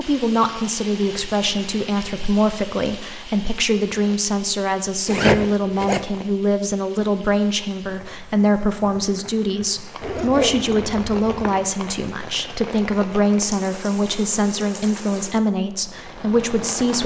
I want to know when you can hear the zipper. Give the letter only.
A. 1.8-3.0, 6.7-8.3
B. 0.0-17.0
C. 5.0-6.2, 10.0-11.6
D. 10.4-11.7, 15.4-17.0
C.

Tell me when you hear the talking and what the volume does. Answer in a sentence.
You can hear the talking from 0.0 to 17.0 s, at a steady volume.